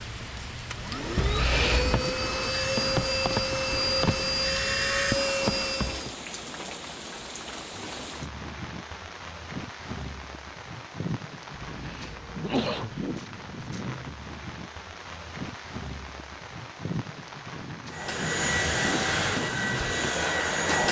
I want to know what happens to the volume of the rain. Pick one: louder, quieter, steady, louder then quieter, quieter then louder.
steady.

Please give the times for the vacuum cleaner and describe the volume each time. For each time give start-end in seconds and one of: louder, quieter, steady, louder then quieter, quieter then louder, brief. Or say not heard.
0.0-6.2 louder
17.9-20.8 brief.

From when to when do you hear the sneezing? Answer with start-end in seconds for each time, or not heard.
1.1-2.1, 11.6-13.0.